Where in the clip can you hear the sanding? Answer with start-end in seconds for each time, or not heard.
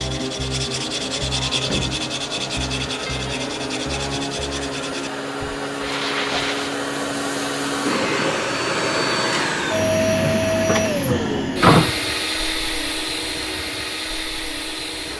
0.0-6.8.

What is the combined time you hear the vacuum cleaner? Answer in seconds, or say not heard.
15 s.